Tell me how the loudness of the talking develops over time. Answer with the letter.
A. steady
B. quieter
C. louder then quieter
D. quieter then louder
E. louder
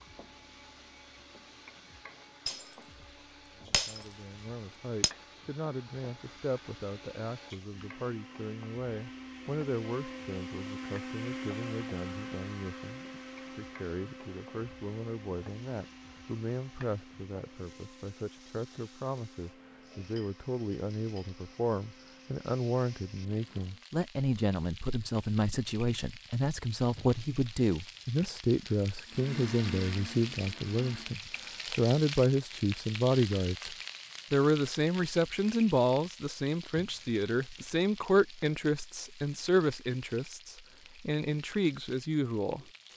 E.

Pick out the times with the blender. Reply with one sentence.
The blender can be heard from 0.0 to 23.9 s and from 29.1 to 31.1 s.